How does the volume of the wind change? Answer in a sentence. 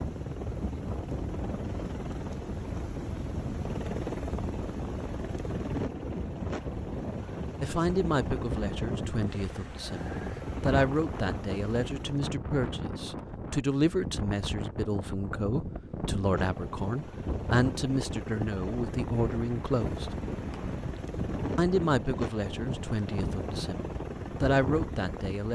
The loudness of the wind stays about the same.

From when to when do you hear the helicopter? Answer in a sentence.
The helicopter can be heard from 0.0 to 12.4 s and from 16.1 to 25.4 s.